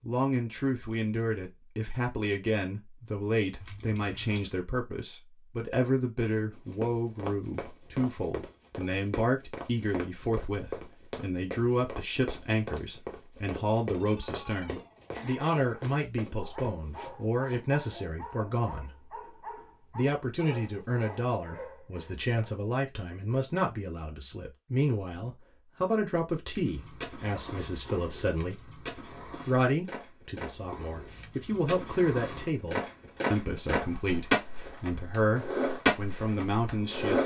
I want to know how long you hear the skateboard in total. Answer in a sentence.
You can hear the skateboard for 11 seconds altogether.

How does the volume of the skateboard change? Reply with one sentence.
The loudness of the skateboard goes up.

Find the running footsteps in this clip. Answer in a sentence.
You can hear the running footsteps from 6.5 to 17.6 s.